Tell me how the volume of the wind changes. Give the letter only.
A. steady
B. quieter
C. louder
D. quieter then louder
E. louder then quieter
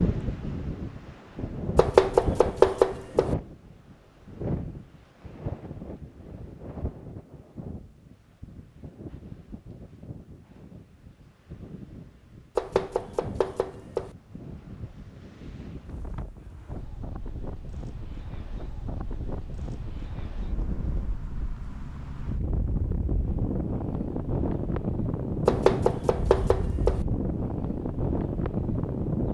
D.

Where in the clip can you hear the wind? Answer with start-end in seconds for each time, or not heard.
0.0-29.2.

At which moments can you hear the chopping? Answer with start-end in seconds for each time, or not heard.
1.8-3.3, 12.6-14.1, 25.4-27.0.